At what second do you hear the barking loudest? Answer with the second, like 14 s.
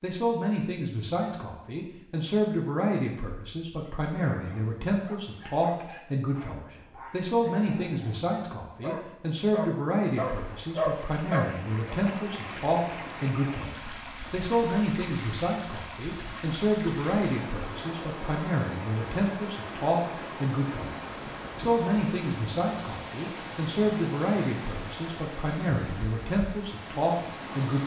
11 s.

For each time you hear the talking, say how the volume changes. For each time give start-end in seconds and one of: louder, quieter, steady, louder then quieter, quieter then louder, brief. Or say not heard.
0.0-27.8 steady.